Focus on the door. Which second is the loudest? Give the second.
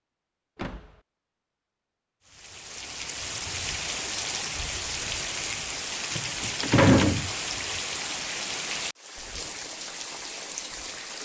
7 s.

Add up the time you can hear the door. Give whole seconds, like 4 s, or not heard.
2 s.